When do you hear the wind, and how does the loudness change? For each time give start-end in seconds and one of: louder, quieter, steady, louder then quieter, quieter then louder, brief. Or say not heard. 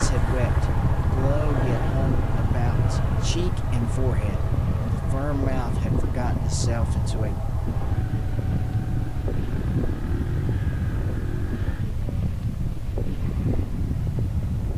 0.0-14.7 steady.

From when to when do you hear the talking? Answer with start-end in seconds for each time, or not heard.
0.0-7.4.